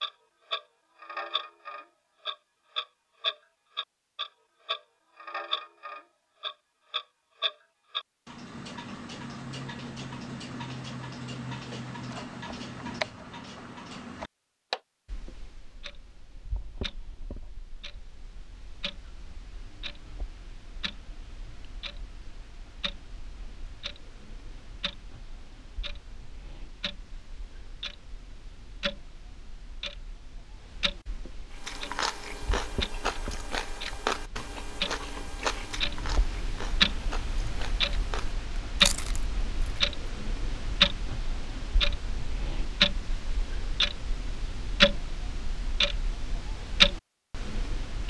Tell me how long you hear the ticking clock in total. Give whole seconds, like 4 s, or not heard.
48 s.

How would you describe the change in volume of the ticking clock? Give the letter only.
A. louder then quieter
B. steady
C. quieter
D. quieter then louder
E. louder
D.